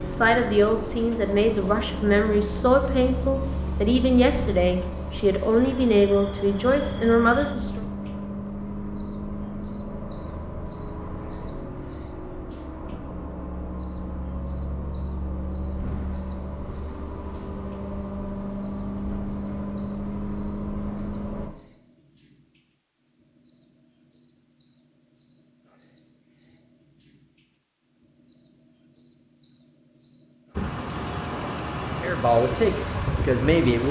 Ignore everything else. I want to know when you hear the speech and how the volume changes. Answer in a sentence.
You can hear the speech from 0.0 to 7.8 s, at a steady volume; and briefly from 32.0 to 33.8 s.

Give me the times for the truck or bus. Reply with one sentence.
You can hear the truck or bus from 0.0 to 21.5 s and from 30.5 to 33.8 s.